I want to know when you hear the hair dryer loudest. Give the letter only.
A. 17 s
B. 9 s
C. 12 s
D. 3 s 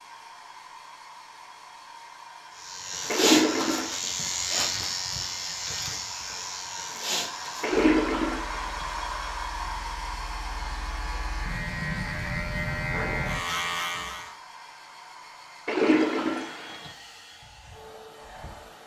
B.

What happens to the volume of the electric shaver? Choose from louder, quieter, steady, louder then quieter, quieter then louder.
quieter then louder.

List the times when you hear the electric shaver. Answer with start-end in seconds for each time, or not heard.
2.5-14.3.